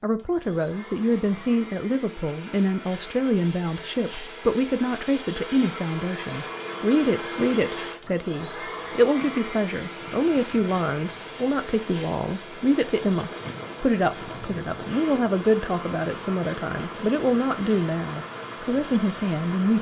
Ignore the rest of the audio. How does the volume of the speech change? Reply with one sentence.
The volume of the speech stays about the same.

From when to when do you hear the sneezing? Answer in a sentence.
You can't hear the sneezing here.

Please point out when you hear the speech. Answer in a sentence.
The speech can be heard from 0.0 to 19.7 s.